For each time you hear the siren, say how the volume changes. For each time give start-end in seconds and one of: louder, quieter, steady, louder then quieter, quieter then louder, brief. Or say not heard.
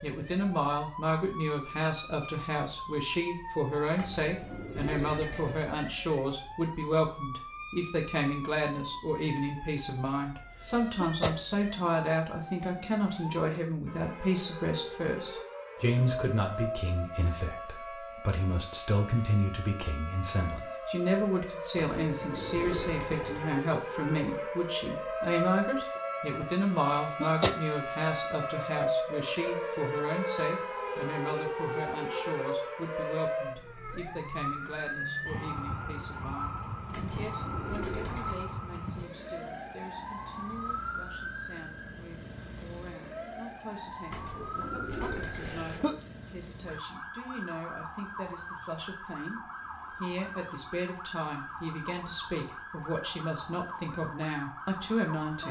0.0-55.4 louder then quieter.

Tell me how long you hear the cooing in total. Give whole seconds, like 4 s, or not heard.
7 s.